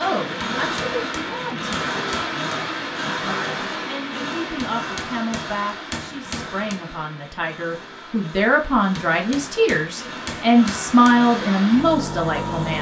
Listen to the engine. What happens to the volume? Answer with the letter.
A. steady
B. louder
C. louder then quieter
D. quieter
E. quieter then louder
E.